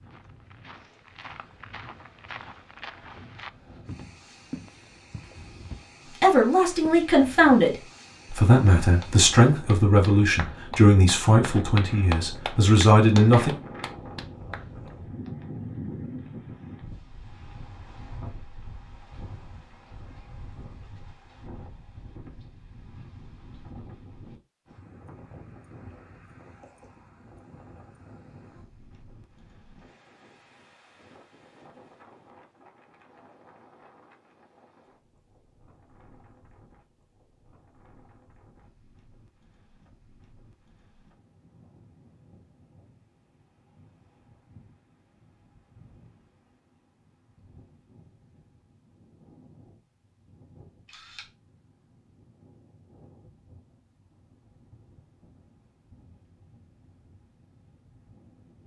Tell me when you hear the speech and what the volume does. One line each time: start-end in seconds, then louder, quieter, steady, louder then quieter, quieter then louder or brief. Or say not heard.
6.2-13.6 steady.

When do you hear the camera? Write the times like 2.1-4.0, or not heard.
50.9-51.3.